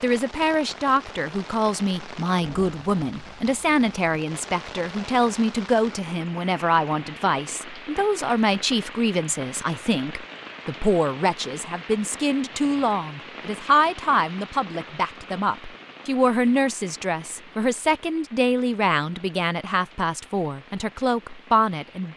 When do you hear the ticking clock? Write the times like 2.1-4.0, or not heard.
not heard.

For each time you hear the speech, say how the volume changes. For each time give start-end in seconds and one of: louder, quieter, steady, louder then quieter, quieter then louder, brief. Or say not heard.
0.0-22.1 steady.